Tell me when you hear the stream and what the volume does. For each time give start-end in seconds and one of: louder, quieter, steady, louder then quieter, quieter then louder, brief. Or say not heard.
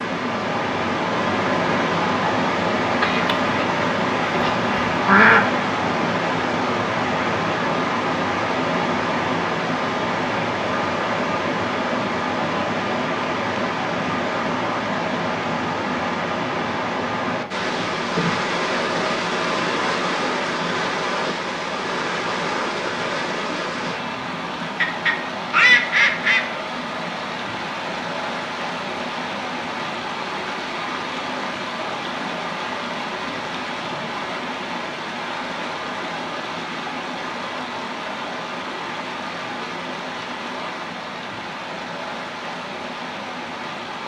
0.0-44.0 quieter.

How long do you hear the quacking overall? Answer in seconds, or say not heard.
4 s.